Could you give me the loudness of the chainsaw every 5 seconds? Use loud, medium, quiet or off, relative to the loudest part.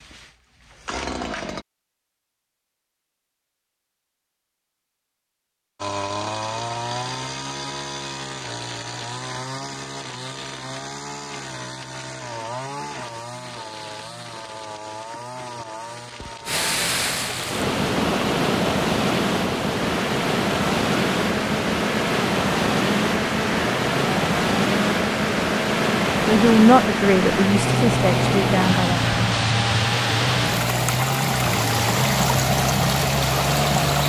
medium, medium, medium, medium, loud, loud, loud.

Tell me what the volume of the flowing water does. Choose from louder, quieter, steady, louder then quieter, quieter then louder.
steady.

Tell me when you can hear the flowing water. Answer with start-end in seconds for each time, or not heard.
16.4-34.0.